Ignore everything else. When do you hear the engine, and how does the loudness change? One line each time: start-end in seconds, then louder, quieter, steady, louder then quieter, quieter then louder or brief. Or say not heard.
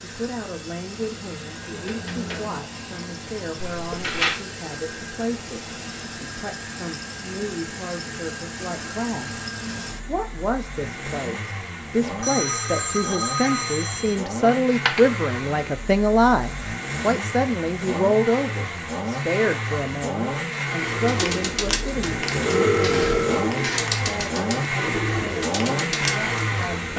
0.0-26.9 louder.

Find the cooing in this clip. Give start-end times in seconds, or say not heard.
20.8-26.6.